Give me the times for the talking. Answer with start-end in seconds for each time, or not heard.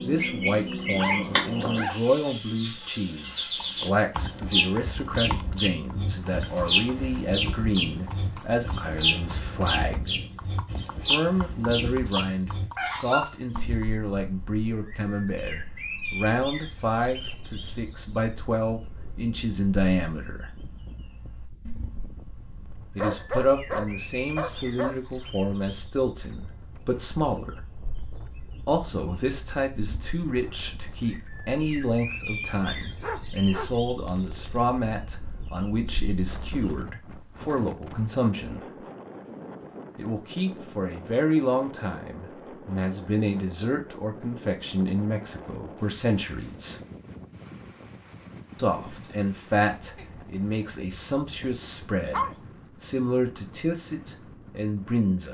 0.0-10.2, 11.1-20.6, 22.9-27.6, 28.6-38.9, 40.0-46.8, 48.5-55.2.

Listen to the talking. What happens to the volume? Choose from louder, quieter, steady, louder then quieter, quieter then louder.
steady.